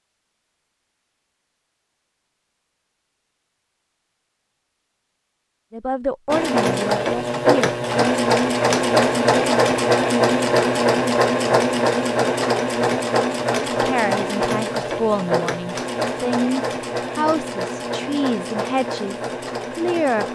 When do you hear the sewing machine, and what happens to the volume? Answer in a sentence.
The sewing machine can be heard from 6.2 to 20.2 s, getting quieter.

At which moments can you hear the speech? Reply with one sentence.
The speech can be heard from 5.7 to 7.7 s and from 13.8 to 20.2 s.